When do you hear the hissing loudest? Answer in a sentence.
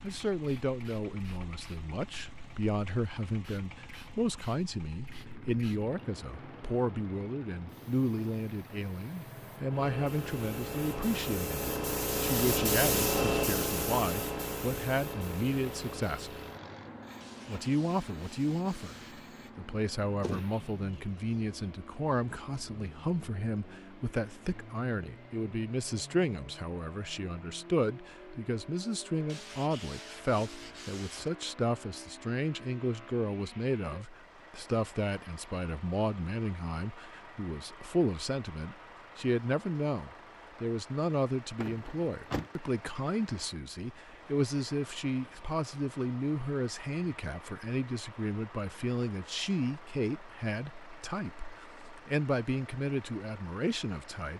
The volume of the hissing peaks at 13 seconds.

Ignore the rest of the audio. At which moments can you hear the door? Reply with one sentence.
The door can be heard from 20.2 to 21.0 s and from 41.6 to 42.5 s.